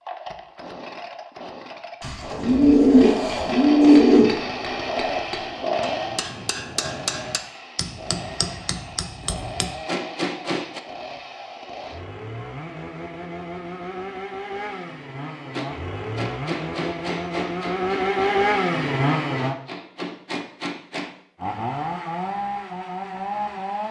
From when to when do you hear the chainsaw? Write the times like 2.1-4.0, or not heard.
0.0-19.6, 21.4-23.8.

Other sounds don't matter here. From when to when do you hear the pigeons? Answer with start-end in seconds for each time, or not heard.
2.0-4.3.